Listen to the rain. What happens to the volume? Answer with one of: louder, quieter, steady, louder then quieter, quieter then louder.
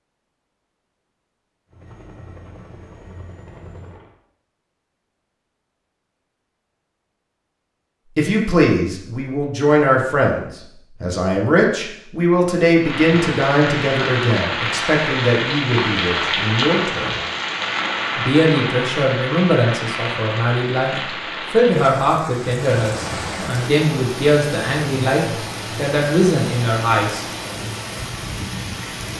quieter.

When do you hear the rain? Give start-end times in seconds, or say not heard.
12.8-29.1.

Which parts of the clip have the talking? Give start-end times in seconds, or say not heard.
8.2-17.2, 18.1-20.9, 21.5-27.2.